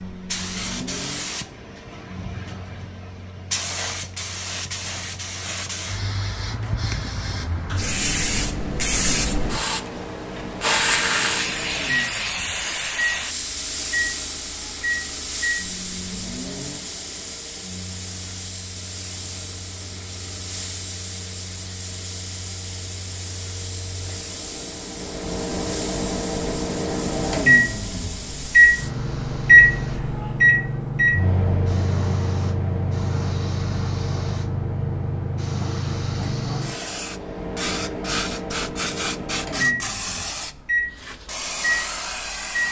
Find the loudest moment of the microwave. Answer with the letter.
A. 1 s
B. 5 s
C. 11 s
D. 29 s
D.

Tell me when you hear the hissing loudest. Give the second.
11 s.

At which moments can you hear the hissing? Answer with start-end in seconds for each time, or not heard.
0.0-42.6.